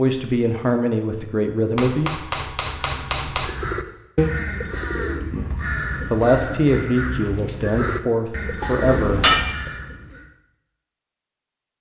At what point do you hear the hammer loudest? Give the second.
9 s.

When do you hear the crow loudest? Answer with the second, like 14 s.
4 s.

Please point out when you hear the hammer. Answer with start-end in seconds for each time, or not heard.
1.8-3.5, 8.6-9.6.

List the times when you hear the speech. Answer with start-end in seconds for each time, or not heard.
0.0-2.1, 5.3-9.7.